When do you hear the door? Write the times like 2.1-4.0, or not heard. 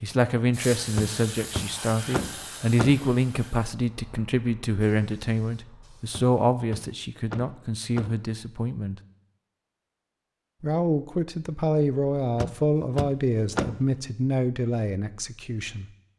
0.9-3.1, 6.1-8.2, 12.3-13.9.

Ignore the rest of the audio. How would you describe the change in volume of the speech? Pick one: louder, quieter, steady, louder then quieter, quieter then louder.
steady.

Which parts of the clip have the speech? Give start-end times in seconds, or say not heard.
0.0-9.0, 10.6-15.8.